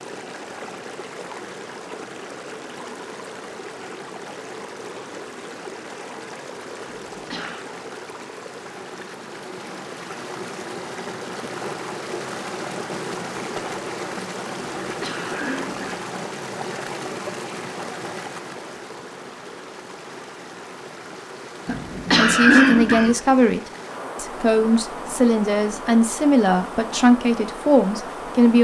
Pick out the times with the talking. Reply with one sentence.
The talking can be heard from 22.1 to 28.5 s.